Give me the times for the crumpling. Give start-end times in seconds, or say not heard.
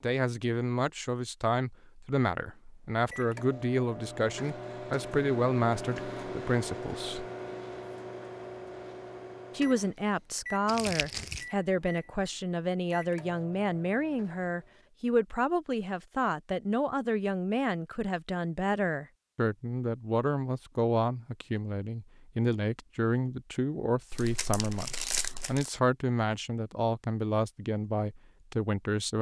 10.7-11.4, 24.1-25.7.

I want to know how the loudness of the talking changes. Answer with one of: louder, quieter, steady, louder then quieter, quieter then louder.
steady.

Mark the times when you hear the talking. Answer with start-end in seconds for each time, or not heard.
0.0-7.2, 9.6-29.1.